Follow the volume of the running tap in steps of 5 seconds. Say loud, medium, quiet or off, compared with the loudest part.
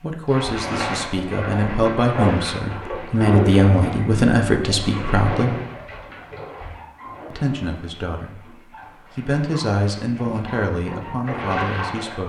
loud, medium, loud.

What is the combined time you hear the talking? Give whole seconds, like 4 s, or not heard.
10 s.